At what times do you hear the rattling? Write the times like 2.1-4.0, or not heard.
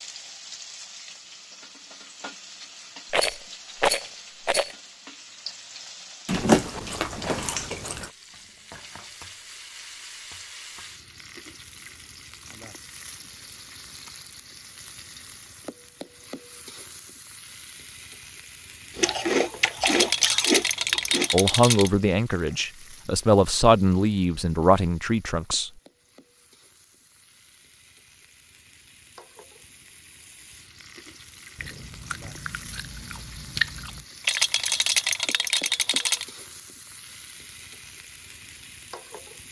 3.1-4.8, 19.8-21.9, 34.2-36.2.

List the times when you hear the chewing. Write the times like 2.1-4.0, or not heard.
6.2-8.1, 18.9-21.3, 31.6-34.0.